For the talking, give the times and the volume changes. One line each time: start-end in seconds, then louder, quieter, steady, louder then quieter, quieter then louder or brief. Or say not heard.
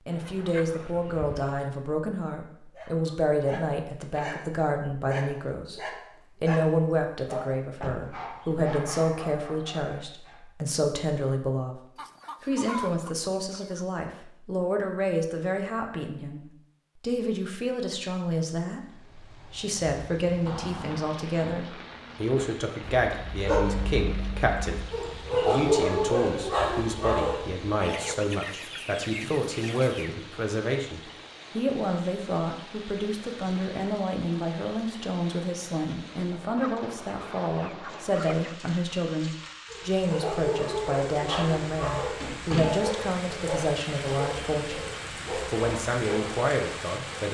0.1-44.9 steady
45.5-47.2 brief.